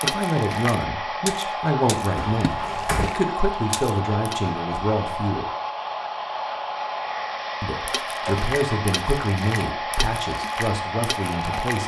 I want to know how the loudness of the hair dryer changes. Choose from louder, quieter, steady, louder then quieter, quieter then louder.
steady.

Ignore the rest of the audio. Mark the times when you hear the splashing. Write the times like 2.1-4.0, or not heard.
0.0-4.3, 7.8-11.8.